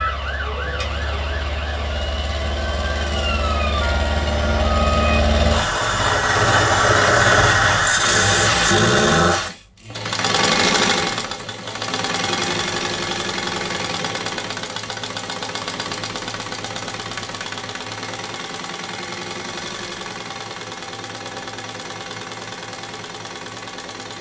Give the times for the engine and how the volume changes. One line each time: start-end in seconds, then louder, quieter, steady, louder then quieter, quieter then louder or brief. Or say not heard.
0.0-24.1 louder then quieter.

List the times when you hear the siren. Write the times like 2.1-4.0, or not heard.
0.0-5.2.